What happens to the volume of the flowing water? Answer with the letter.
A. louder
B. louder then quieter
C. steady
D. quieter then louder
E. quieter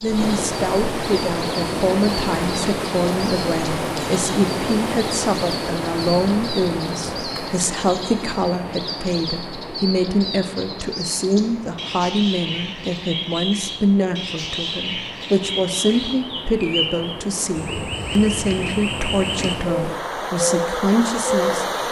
D.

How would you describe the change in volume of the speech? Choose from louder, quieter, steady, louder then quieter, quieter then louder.
steady.